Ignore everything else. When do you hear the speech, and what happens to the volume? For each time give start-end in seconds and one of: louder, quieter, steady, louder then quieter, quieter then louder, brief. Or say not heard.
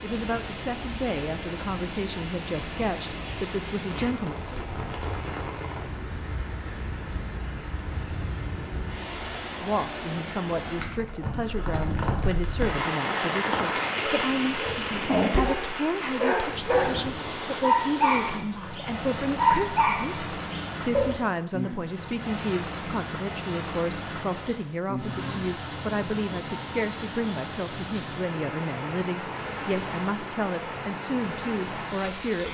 0.0-4.3 steady
9.6-32.5 steady.